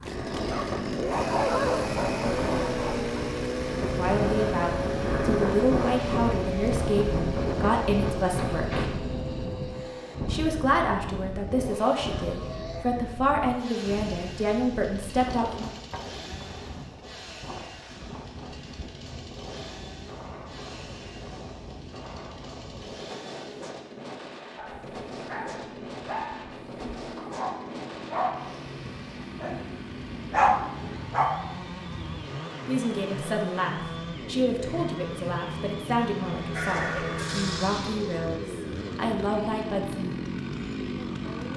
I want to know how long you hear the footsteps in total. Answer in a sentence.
The footsteps can't be heard in this clip.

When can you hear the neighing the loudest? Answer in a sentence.
The loudest moment of the neighing is at 37 seconds.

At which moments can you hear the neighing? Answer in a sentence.
You can hear the neighing from 36.5 to 38.4 s.